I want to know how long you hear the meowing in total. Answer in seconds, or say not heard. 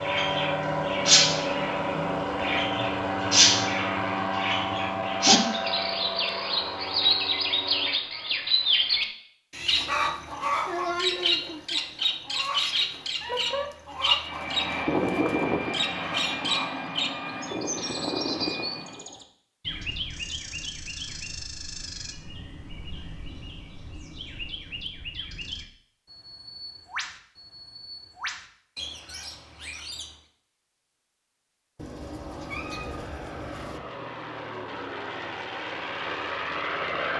4 s.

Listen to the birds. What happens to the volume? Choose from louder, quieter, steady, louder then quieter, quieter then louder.
quieter.